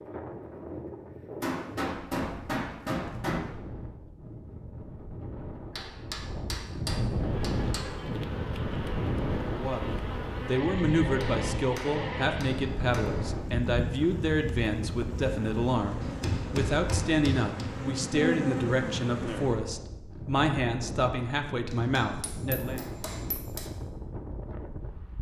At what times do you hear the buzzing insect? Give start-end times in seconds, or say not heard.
7.2-19.7.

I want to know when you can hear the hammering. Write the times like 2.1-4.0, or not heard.
1.4-3.4, 5.8-7.8, 11.1-13.5, 16.0-17.7, 21.7-23.7.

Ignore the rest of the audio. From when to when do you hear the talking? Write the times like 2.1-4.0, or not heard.
9.5-22.9.